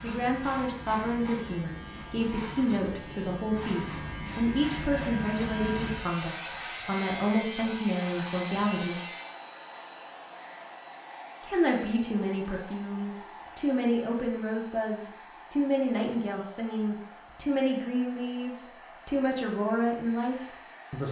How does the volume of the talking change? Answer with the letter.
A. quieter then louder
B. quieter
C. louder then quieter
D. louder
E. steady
E.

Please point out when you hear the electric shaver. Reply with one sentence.
The electric shaver can be heard from 0.0 to 9.4 s.